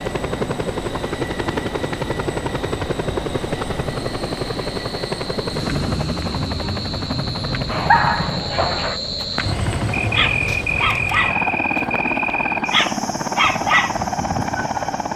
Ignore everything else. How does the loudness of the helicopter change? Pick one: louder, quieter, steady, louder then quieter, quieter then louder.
steady.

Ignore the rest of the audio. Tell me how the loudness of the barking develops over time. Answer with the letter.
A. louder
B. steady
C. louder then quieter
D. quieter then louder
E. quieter
D.